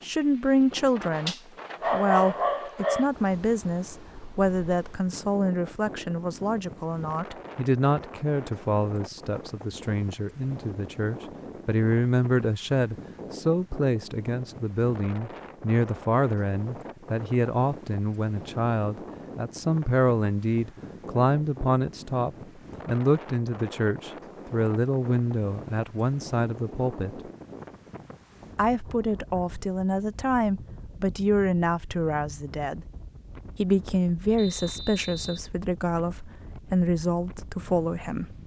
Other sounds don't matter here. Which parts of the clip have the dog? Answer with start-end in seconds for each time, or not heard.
1.2-3.0.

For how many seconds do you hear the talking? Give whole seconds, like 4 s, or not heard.
36 s.